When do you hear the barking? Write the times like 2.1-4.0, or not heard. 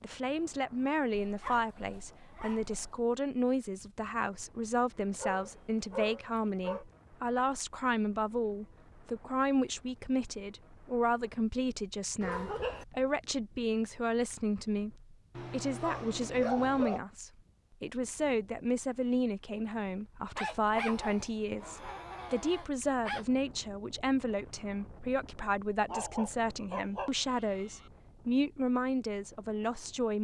1.1-3.0, 5.2-6.8, 12.2-12.8, 15.3-17.0, 20.4-23.2, 25.9-27.9.